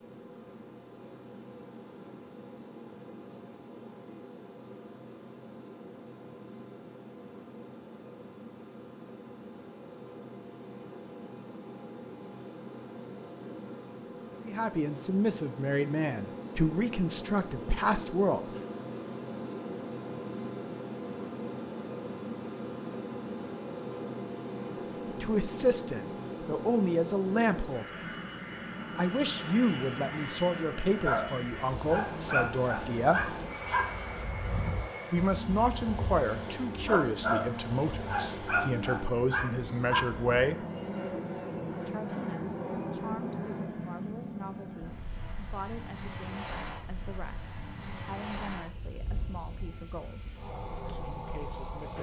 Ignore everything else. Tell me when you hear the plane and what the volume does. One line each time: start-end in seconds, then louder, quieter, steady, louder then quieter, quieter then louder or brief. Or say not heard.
0.0-51.9 louder.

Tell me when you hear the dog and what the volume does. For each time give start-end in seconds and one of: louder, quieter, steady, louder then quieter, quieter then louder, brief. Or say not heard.
31.0-40.4 quieter then louder.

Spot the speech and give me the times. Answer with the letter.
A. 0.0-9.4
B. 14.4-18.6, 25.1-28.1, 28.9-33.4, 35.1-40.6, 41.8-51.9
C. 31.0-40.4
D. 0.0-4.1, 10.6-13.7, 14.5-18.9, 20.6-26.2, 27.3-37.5
B.